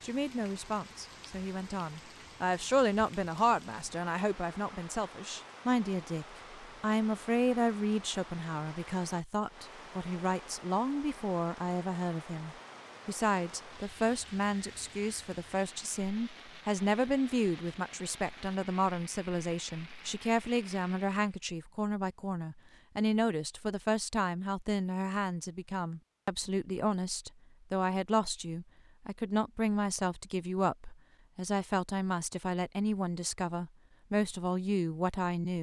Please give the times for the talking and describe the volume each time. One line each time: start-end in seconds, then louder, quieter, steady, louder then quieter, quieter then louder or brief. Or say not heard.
0.0-35.5 steady.